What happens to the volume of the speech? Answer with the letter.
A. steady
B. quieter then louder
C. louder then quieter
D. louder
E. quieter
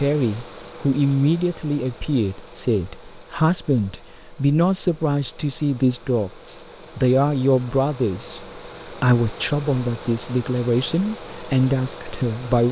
A.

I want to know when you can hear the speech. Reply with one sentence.
You can hear the speech from 0.0 to 12.6 s.